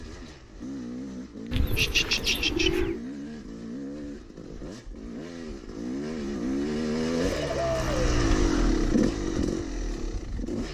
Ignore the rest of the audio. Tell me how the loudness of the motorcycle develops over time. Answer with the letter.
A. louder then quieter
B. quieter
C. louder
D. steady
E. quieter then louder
C.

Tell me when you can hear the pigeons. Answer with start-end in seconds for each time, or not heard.
1.5-3.0, 7.2-7.9.